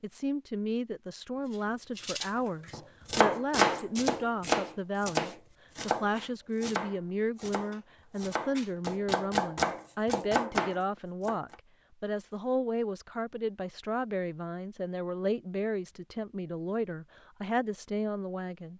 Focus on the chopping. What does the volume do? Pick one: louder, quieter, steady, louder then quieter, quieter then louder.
quieter then louder.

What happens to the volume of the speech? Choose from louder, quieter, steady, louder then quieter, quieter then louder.
steady.